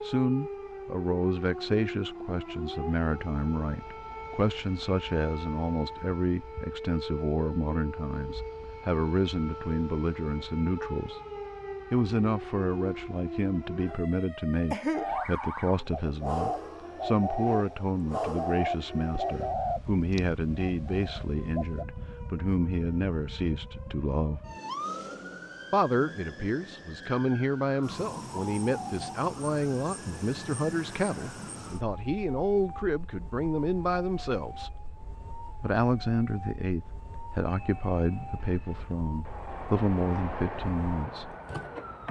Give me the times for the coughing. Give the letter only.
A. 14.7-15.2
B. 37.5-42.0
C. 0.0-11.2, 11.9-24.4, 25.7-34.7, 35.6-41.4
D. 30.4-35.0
A.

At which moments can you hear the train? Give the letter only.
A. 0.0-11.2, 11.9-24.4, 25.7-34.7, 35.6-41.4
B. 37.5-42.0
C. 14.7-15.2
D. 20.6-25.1
B.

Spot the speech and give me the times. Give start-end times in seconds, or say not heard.
0.0-11.2, 11.9-24.4, 25.7-34.7, 35.6-41.4.